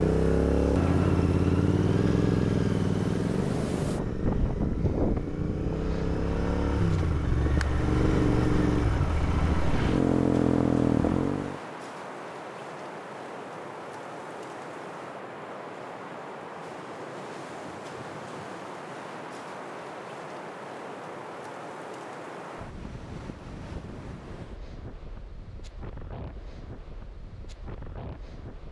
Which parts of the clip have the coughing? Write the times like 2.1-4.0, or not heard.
not heard.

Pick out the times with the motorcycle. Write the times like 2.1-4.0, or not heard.
0.0-11.6.